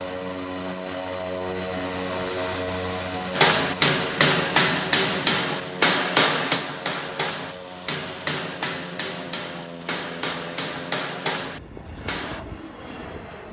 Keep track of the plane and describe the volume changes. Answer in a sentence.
The loudness of the plane goes down.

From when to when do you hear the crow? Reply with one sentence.
You can't hear the crow here.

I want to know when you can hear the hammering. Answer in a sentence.
The hammering can be heard from 3.3 to 12.4 s.